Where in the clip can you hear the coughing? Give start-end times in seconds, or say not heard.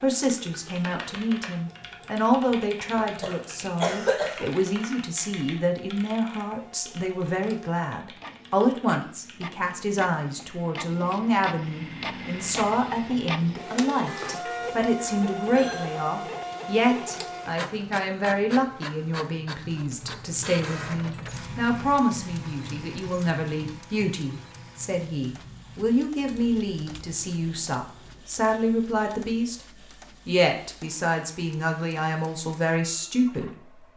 3.0-4.5.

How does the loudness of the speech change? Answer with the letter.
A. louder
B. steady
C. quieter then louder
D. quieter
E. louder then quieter
B.